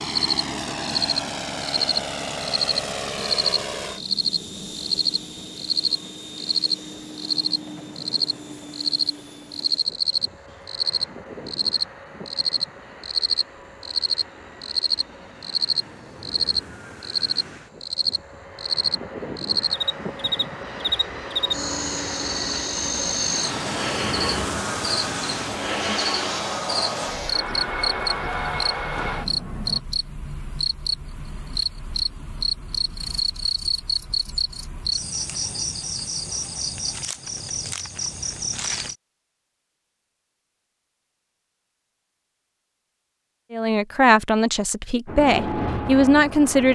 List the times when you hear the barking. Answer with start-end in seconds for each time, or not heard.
not heard.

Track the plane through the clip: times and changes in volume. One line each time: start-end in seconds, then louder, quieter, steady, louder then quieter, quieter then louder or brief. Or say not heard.
0.0-29.8 quieter then louder
45.0-46.6 brief.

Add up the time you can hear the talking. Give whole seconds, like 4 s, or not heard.
3 s.